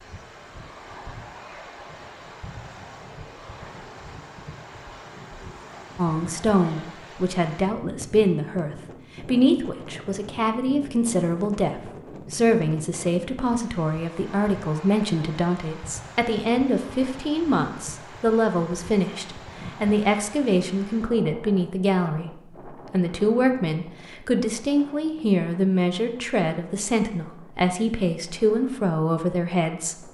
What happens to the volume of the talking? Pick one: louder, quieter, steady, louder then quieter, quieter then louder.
steady.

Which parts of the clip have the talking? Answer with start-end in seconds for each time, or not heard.
6.0-30.1.